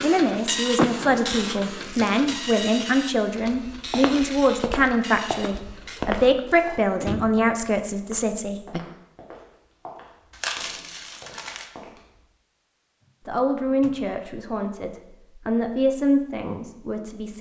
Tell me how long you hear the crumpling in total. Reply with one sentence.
You can hear the crumpling for 2 seconds altogether.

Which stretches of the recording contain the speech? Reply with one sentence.
The speech can be heard from 0.0 to 8.8 s and from 13.2 to 17.3 s.